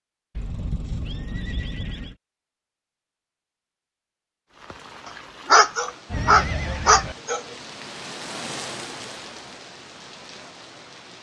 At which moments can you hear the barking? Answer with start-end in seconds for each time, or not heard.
5.5-7.4.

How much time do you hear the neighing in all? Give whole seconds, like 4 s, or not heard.
3 s.